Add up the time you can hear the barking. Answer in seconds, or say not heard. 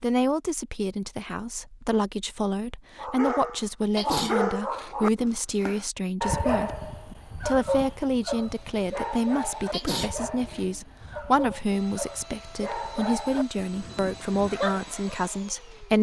12 s.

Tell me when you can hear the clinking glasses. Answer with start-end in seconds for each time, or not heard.
not heard.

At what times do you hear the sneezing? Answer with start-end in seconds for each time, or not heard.
4.0-5.0, 9.7-10.6.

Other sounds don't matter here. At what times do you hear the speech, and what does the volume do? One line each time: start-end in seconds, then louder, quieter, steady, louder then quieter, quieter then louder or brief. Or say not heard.
0.0-15.9 steady.